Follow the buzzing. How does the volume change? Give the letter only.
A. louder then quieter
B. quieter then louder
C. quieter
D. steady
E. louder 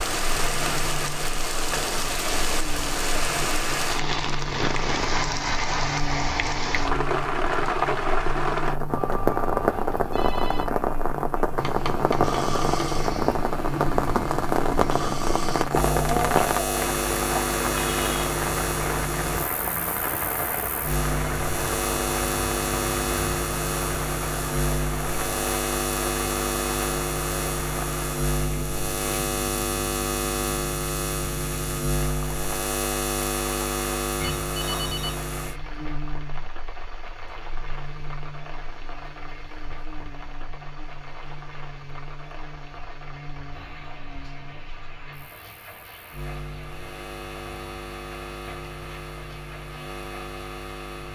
A.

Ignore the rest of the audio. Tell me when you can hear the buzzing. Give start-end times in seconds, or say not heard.
0.2-51.0.